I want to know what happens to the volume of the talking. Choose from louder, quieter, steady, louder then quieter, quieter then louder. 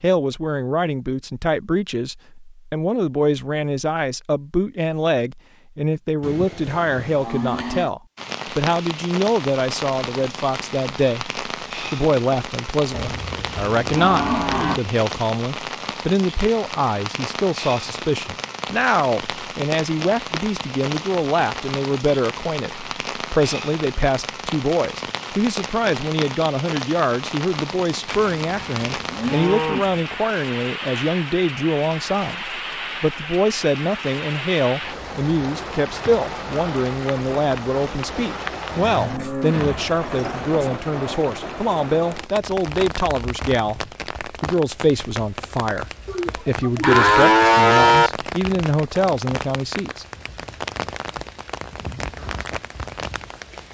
steady.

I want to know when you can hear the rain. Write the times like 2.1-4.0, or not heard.
8.2-53.6.